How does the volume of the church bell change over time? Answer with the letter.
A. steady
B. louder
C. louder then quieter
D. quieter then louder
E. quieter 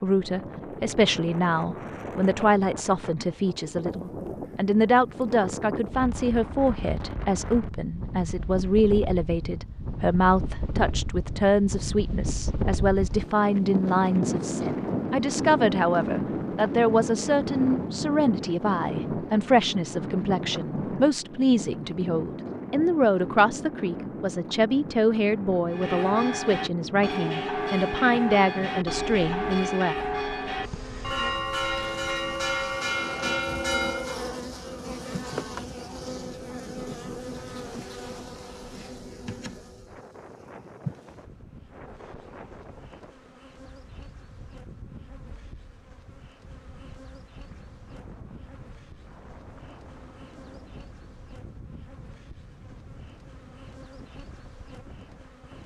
A.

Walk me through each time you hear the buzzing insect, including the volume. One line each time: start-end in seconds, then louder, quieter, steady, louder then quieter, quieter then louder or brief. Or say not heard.
30.6-55.6 quieter.